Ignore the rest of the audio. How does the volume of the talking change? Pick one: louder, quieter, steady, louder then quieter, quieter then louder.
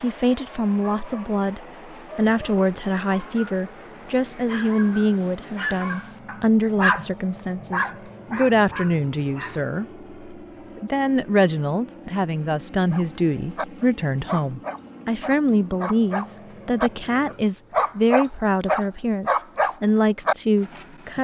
steady.